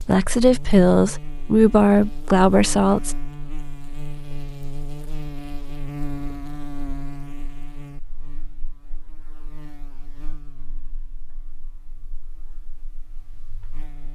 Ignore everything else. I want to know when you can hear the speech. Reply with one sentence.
The speech can be heard from 0.0 to 3.1 s.